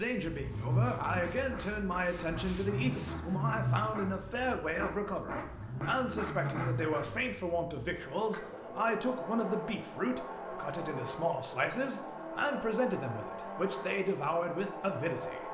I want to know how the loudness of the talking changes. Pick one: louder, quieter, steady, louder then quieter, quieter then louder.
steady.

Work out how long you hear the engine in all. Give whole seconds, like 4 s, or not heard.
15 s.